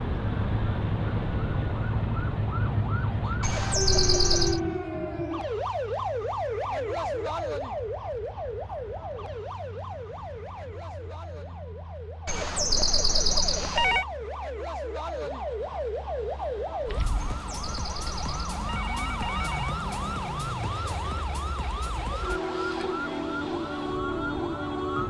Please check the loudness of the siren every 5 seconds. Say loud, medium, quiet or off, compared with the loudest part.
loud, loud, medium, loud, loud.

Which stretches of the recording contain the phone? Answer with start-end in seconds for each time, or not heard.
3.4-4.6, 12.2-14.1, 17.1-19.8.